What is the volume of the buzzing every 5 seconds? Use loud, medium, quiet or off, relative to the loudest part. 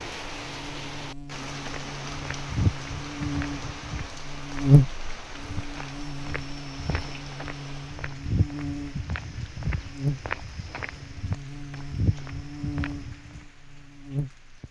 loud, medium, medium.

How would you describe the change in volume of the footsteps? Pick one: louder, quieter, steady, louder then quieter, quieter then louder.
quieter then louder.